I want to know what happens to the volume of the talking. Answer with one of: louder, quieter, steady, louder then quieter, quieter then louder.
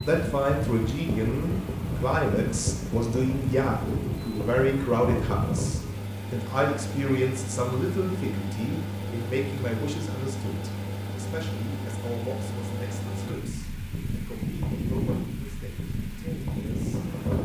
quieter.